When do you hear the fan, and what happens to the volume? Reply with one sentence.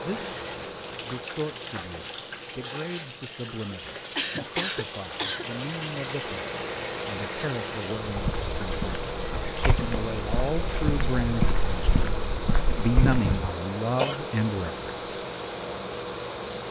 The fan can be heard from 0.0 to 16.6 s, getting louder.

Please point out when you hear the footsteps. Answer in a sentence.
You can hear the footsteps from 8.1 to 13.6 s.